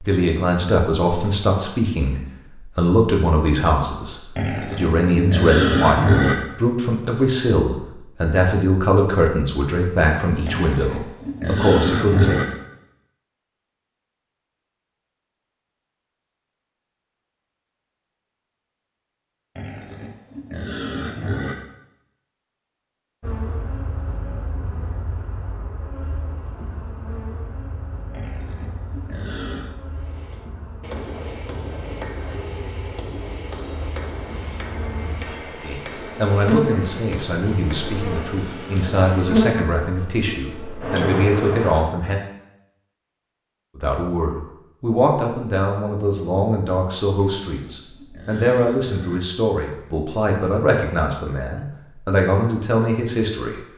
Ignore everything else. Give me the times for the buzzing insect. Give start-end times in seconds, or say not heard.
23.2-41.9.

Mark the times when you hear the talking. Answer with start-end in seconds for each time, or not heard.
0.0-12.4, 35.6-42.2, 43.8-53.6.